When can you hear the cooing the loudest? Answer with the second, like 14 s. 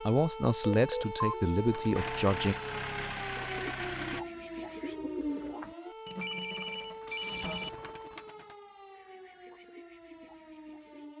5 s.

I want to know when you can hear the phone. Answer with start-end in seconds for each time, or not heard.
0.6-1.4, 6.0-7.7.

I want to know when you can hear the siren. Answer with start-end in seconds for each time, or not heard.
0.0-11.1.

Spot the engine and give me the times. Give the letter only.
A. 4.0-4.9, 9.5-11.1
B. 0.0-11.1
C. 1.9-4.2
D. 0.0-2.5
C.